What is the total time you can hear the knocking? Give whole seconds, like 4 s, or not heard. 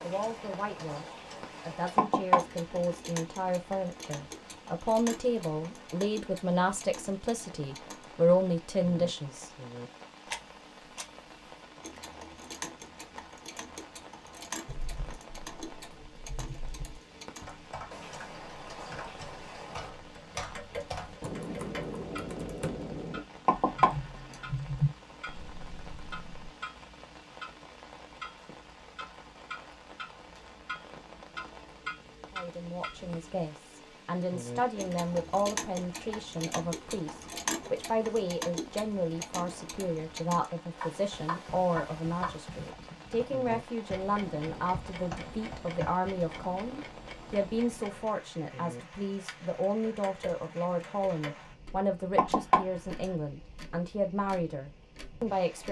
3 s.